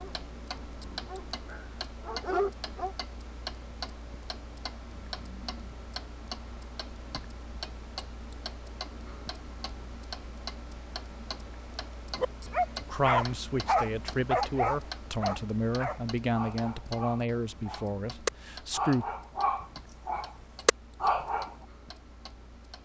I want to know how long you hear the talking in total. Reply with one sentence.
The talking can be heard for 6 seconds in total.